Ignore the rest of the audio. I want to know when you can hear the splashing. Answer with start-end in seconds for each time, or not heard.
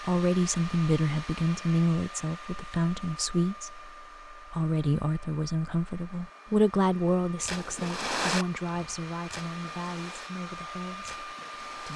7.3-11.9.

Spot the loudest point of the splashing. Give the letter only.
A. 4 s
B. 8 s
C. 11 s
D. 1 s
B.